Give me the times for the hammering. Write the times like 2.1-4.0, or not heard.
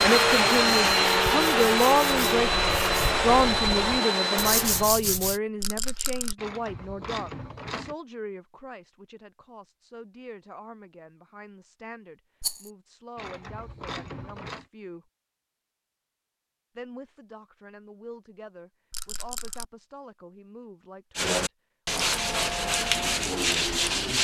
not heard.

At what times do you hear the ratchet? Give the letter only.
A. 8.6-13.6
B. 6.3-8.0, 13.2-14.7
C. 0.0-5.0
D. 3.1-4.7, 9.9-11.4
B.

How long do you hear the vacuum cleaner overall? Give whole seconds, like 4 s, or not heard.
5 s.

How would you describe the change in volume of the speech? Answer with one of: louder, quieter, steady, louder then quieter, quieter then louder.
quieter.